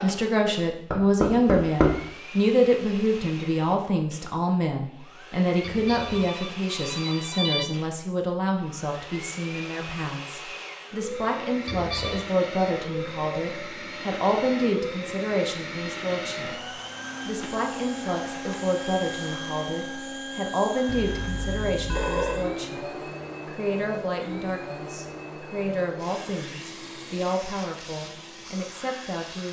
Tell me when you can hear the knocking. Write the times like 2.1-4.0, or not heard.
0.9-2.0.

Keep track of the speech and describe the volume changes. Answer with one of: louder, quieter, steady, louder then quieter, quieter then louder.
quieter.